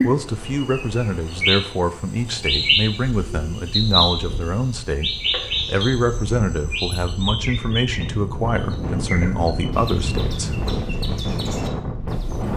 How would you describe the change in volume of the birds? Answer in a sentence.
The loudness of the birds goes down.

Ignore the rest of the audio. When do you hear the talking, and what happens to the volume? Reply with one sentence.
You can hear the talking from 0.0 to 10.6 s, at a steady volume.